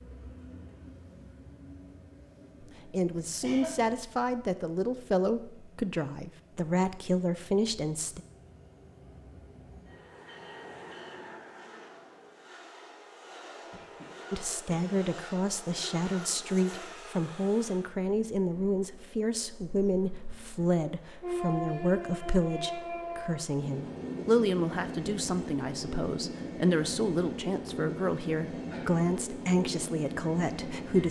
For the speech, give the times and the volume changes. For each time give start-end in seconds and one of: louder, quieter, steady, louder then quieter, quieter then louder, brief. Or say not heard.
2.9-8.2 steady
14.3-31.0 steady.